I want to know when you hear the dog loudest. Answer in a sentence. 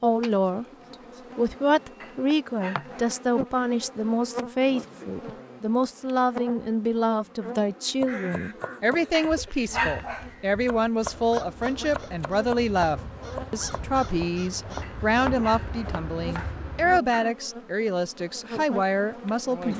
The loudest moment of the dog is at 10 seconds.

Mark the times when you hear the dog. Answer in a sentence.
You can hear the dog from 2.0 to 3.1 s, from 9.1 to 10.2 s and from 14.8 to 15.9 s.